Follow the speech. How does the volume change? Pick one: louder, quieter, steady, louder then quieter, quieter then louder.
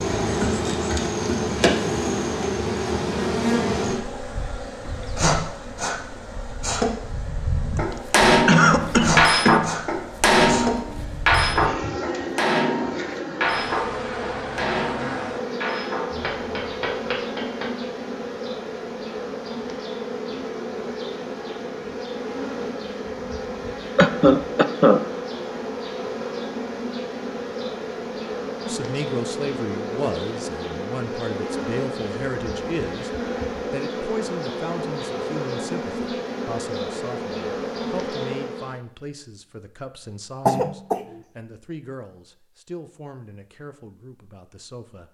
quieter.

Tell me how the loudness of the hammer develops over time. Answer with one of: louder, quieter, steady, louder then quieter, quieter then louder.
quieter.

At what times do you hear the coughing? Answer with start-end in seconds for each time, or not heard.
8.4-9.8, 23.9-25.0, 40.5-41.0.